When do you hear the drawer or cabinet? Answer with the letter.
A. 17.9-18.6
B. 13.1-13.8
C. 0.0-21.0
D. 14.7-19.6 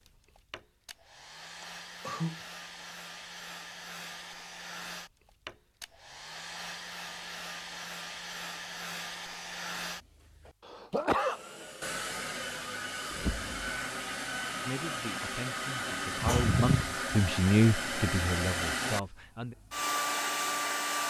B.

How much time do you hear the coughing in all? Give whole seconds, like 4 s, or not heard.
2 s.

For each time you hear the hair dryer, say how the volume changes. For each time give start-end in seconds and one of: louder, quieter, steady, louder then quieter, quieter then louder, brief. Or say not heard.
0.0-21.0 louder.